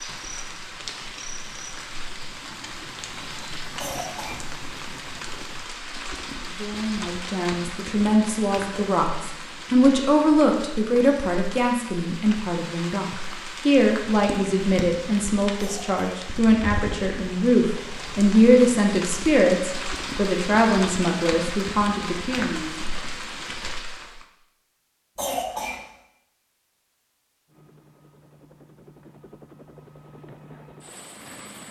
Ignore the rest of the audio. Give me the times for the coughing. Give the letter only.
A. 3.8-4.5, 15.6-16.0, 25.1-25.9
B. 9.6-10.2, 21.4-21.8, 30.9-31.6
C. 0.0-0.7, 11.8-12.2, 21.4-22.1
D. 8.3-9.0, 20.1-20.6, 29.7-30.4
A.